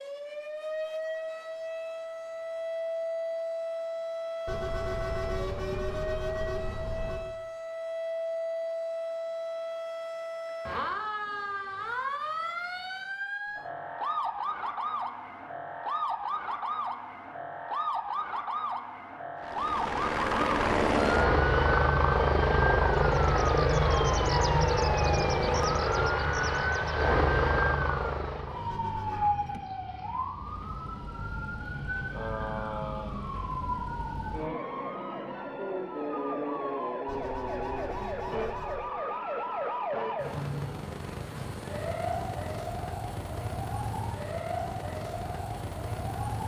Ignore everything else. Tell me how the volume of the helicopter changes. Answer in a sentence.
The volume of the helicopter stays about the same.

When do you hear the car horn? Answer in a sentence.
You can hear the car horn from 4.5 to 7.2 s, from 28.6 to 29.3 s and from 37.0 to 38.9 s.